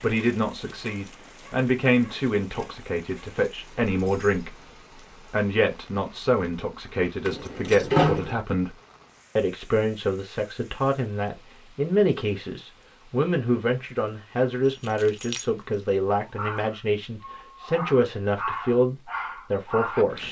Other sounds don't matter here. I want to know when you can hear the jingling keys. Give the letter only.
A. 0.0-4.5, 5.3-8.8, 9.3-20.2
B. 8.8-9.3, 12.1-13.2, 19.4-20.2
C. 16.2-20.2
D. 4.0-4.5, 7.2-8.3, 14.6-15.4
D.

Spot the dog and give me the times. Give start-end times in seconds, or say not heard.
16.2-20.2.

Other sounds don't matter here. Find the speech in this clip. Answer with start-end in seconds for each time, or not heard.
0.0-4.5, 5.3-8.8, 9.3-20.2.